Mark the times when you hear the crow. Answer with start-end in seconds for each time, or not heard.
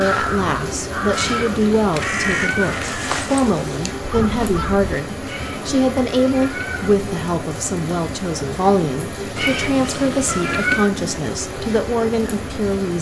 0.0-4.8.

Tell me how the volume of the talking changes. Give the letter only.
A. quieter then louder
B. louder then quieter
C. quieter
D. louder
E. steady
E.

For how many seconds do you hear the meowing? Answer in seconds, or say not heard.
5 s.